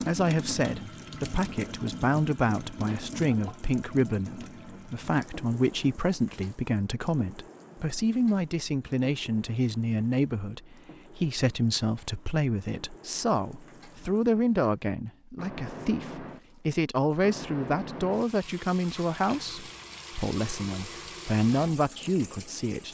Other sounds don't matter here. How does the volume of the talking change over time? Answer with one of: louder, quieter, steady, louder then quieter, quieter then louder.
steady.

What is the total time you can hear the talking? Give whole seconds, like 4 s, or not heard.
23 s.